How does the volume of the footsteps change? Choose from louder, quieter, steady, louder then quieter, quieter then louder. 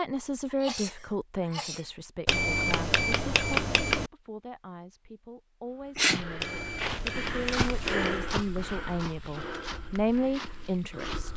louder then quieter.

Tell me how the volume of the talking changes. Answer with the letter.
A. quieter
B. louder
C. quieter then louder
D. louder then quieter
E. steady
C.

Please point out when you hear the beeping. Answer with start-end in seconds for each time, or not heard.
2.2-4.1, 6.4-8.2.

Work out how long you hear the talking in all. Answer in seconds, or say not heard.
11 s.